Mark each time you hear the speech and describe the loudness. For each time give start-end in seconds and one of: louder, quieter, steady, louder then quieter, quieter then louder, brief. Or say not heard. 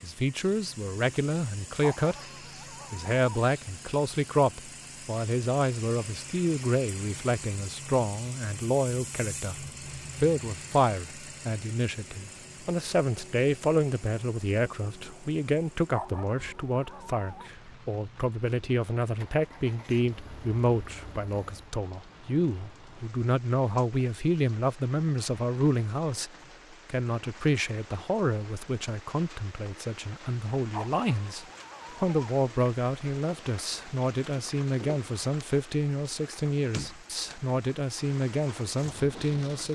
0.0-2.2 brief
2.9-39.7 steady.